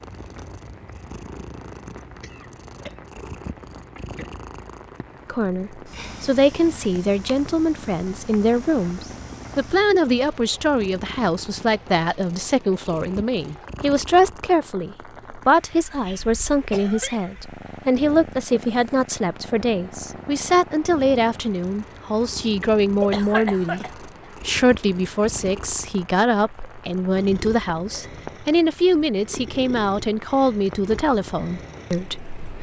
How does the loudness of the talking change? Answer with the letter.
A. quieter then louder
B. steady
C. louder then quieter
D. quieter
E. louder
B.